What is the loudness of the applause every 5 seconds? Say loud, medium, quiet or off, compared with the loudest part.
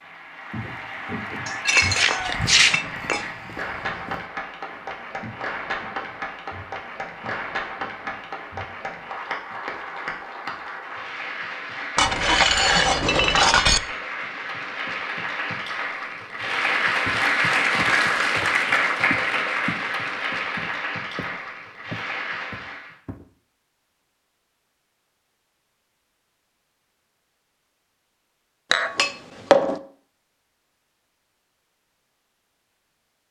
medium, medium, medium, loud, medium, off, off.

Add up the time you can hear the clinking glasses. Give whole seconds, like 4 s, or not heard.
5 s.